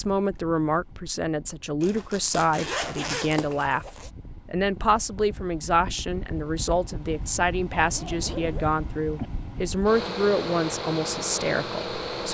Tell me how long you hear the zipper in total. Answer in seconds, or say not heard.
4 s.